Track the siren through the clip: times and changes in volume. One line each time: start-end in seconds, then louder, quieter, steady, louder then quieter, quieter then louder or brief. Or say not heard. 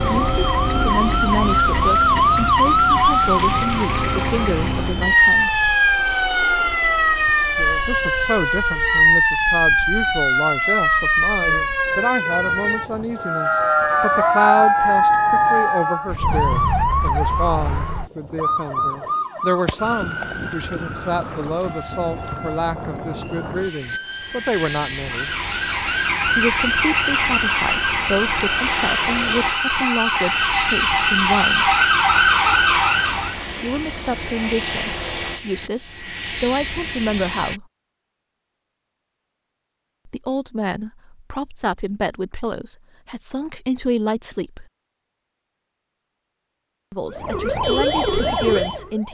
0.0-33.4 quieter then louder
47.1-49.0 brief.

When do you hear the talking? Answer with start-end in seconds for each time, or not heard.
0.0-5.7, 7.8-25.3, 26.2-31.8, 33.6-37.6, 40.0-44.6, 46.9-49.0.